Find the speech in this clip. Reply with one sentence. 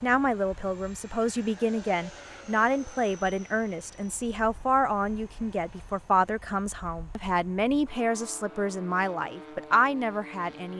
The speech can be heard from 0.0 to 10.7 s.